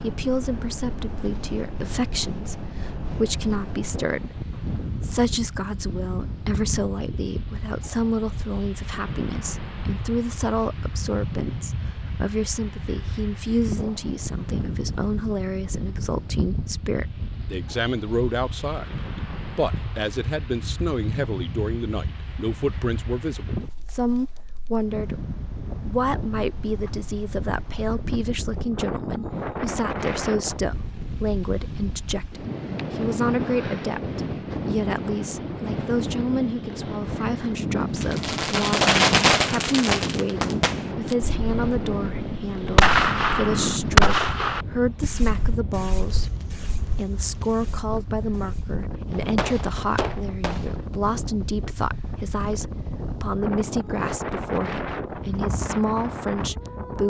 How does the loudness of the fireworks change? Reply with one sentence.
The loudness of the fireworks goes down, then up.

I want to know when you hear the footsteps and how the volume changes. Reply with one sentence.
You can't hear the footsteps here.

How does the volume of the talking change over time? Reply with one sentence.
The loudness of the talking stays about the same.